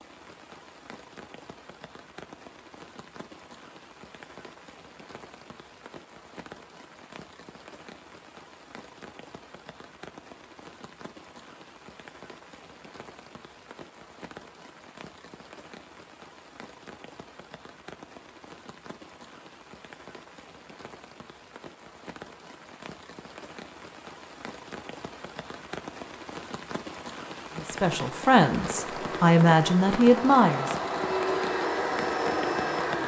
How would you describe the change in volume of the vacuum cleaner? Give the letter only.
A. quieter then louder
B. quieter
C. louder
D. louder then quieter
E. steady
C.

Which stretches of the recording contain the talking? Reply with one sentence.
The talking can be heard from 27.6 to 30.8 s.